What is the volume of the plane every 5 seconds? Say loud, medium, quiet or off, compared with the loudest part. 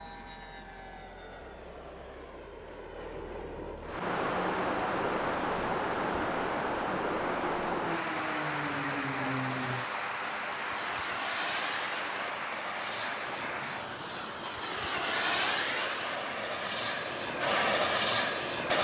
quiet, medium, medium, loud.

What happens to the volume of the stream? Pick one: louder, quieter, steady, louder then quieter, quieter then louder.
quieter.